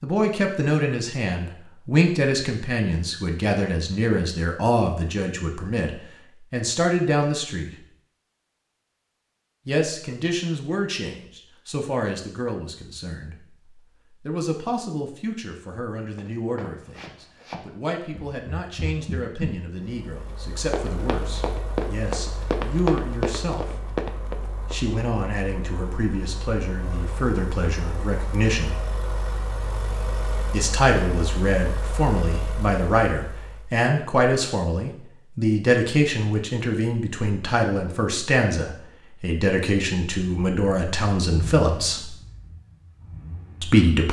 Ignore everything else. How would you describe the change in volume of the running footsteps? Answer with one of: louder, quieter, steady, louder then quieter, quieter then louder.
louder.